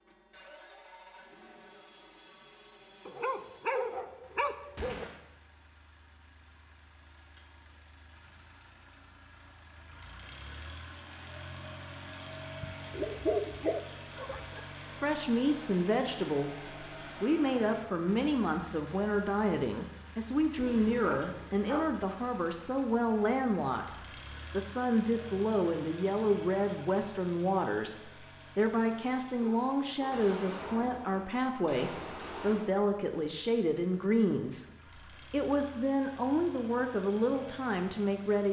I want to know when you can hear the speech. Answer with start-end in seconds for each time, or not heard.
15.0-38.4.